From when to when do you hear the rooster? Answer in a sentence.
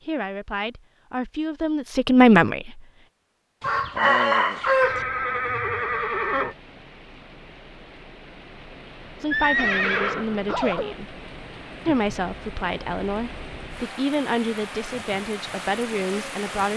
You can hear the rooster from 3.6 to 5.0 s.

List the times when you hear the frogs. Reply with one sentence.
You can't hear the frogs here.